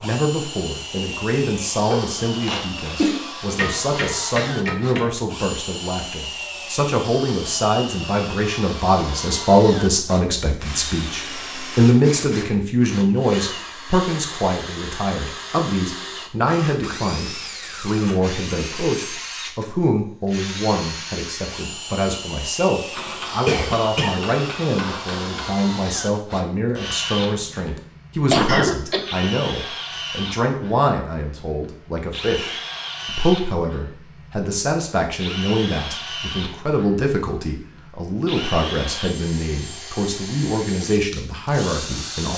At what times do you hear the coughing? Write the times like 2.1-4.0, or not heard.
1.9-3.2, 23.4-24.2, 28.3-29.3.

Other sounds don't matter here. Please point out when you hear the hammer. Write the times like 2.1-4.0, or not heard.
3.5-5.2, 22.9-25.5.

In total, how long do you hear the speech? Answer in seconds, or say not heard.
42 s.